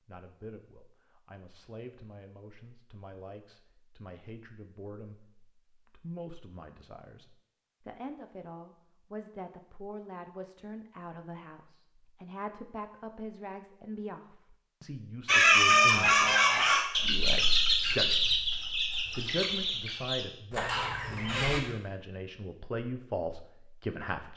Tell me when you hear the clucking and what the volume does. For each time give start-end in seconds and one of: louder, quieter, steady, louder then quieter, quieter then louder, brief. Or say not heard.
15.2-21.6 quieter.